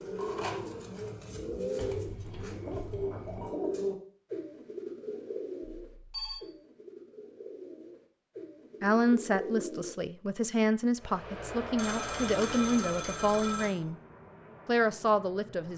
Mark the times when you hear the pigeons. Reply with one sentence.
The pigeons can be heard from 0.0 to 9.9 s.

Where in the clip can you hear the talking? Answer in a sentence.
The talking can be heard from 8.8 to 13.9 s and from 14.7 to 15.7 s.